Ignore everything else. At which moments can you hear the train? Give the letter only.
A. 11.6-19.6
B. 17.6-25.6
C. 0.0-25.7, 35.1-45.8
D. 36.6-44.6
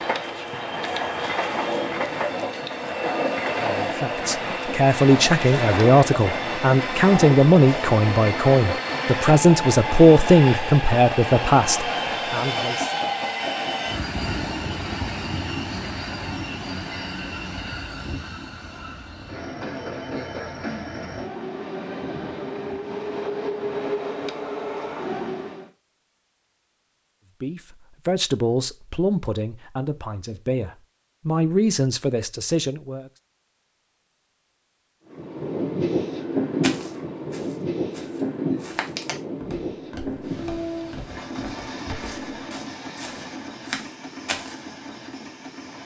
C.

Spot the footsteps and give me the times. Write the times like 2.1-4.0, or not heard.
36.6-44.6.